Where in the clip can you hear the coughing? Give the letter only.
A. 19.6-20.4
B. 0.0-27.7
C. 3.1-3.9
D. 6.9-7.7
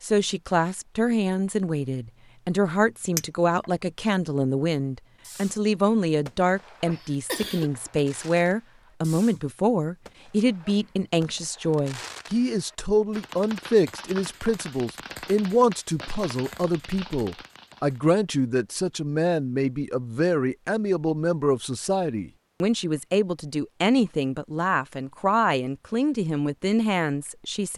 D.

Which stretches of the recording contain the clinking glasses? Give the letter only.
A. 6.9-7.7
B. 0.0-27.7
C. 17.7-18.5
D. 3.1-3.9
D.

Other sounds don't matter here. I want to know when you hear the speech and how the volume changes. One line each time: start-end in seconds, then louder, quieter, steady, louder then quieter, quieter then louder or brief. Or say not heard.
0.0-27.7 steady.